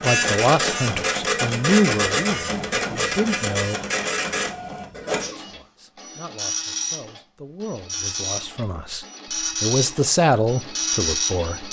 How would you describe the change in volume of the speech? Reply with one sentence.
The volume of the speech goes down, then up.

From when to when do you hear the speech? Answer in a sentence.
The speech can be heard from 0.0 to 3.8 s and from 5.3 to 11.6 s.